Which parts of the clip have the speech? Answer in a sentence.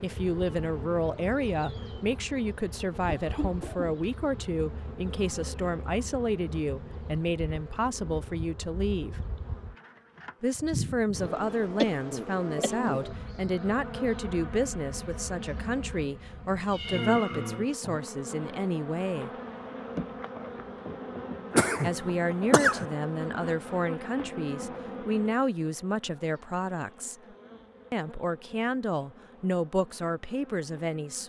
The speech can be heard from 0.0 to 9.2 s, from 10.4 to 19.3 s, from 21.8 to 27.1 s and from 27.9 to 31.2 s.